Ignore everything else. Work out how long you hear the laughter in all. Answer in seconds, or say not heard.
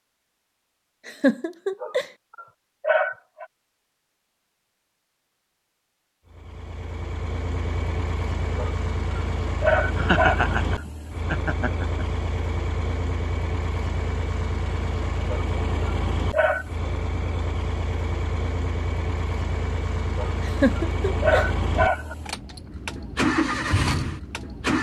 4 s.